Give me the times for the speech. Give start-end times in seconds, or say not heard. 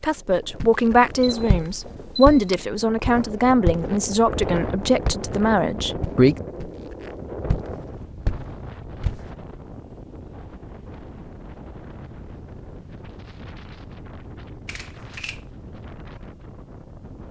0.0-6.3.